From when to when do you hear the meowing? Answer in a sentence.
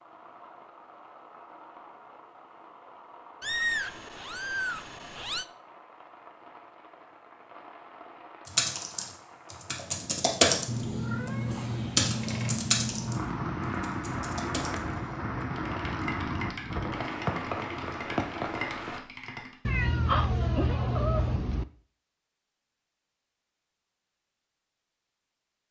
You can hear the meowing from 3.4 to 5.5 s, from 10.7 to 13.3 s and from 19.6 to 21.6 s.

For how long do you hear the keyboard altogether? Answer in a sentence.
The keyboard can be heard for 11 seconds in total.